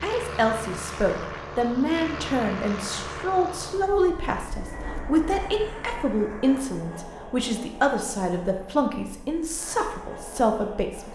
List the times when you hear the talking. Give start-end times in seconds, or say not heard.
0.0-11.1.